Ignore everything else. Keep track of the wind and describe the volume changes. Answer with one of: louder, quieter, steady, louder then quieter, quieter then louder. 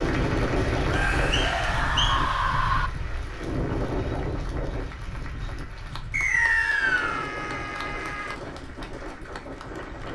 quieter.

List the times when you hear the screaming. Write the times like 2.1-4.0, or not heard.
0.8-2.9, 6.2-8.4.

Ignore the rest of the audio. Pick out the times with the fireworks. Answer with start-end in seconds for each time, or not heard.
not heard.